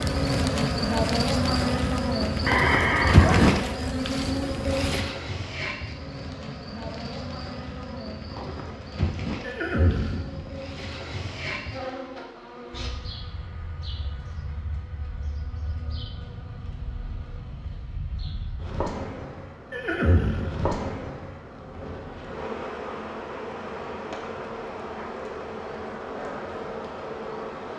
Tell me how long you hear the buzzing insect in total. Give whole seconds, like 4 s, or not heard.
28 s.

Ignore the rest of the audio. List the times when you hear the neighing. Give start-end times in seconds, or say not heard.
2.5-3.6, 9.4-11.0, 19.7-20.7.